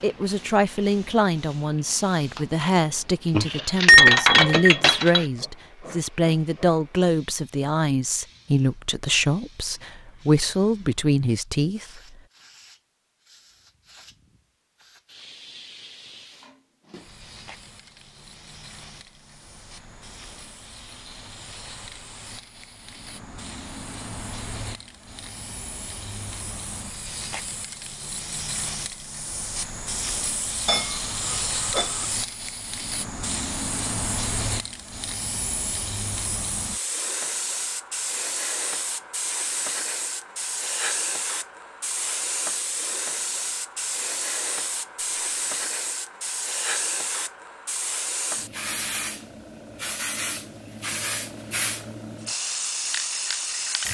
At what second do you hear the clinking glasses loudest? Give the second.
4 s.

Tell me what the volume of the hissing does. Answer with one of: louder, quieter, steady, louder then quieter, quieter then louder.
louder.